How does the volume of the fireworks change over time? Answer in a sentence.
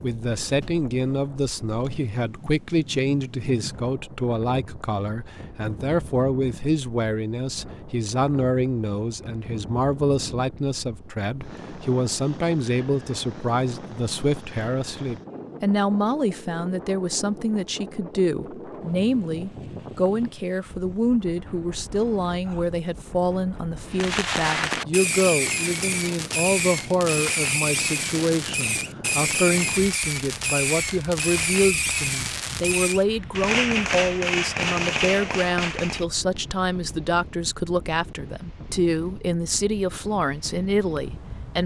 The volume of the fireworks stays about the same.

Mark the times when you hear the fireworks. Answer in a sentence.
The fireworks can be heard from 23.9 to 36.0 s.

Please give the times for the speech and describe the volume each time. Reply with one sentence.
You can hear the speech from 0.0 to 41.6 s, at a steady volume.